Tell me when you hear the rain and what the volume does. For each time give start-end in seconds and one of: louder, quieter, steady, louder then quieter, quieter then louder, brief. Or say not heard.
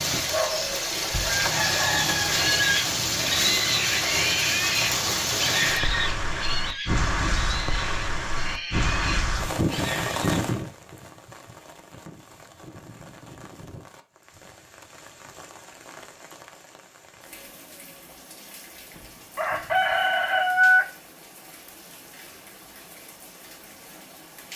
0.0-24.5 quieter.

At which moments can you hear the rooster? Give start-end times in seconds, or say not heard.
0.1-2.8, 18.9-20.9.